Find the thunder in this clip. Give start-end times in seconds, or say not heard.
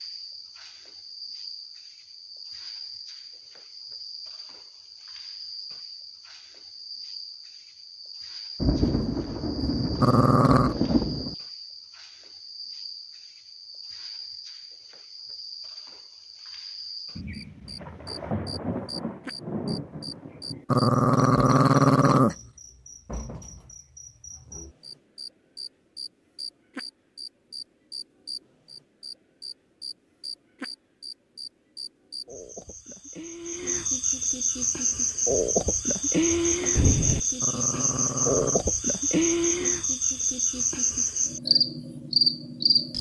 8.6-11.3, 17.1-20.6, 36.3-37.2.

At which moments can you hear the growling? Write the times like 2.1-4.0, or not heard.
10.0-10.8, 20.7-22.4, 37.4-38.6.